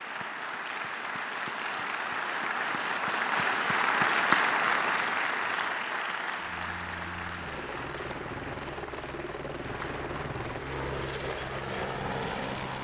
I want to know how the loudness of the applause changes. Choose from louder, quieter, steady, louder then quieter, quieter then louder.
louder then quieter.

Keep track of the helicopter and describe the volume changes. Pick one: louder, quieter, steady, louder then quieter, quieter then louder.
louder.